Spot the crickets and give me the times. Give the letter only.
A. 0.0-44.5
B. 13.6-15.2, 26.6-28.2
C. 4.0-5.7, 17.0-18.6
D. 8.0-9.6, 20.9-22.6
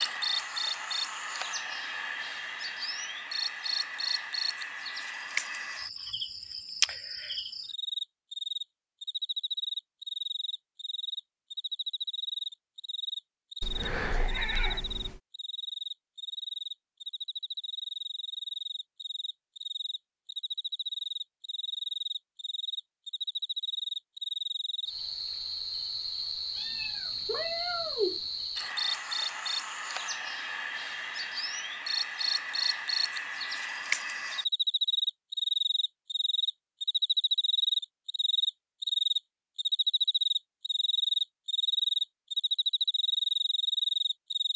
A.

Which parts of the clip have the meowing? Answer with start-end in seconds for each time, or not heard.
13.6-15.2, 26.6-28.2.